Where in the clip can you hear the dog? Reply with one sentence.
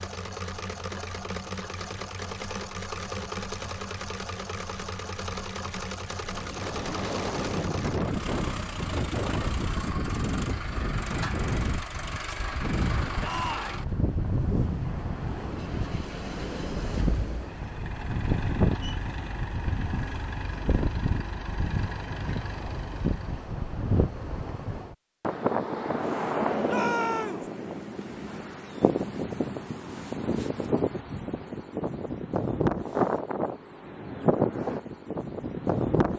You can't hear the dog here.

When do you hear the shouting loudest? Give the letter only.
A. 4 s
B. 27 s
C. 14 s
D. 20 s
B.